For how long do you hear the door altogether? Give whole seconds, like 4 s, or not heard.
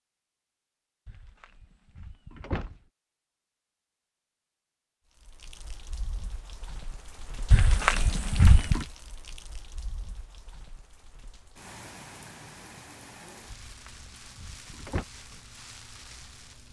5 s.